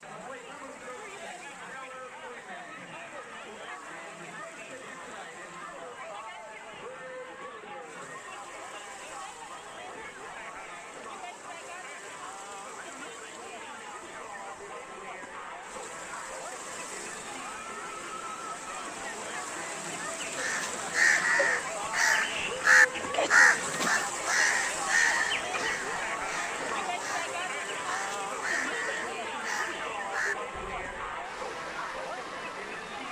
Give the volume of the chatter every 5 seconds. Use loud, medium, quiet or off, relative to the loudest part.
medium, medium, medium, medium, loud, loud, loud.